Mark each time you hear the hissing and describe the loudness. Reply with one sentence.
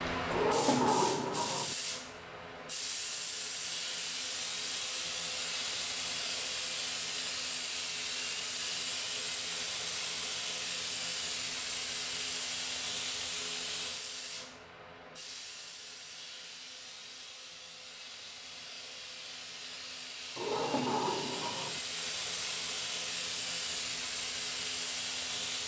The hissing can be heard from 0.0 to 25.6 s, getting quieter then louder.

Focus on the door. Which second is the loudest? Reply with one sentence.
The volume of the door peaks at 1 second.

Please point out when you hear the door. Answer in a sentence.
The door can be heard from 0.3 to 1.8 s and from 20.4 to 21.8 s.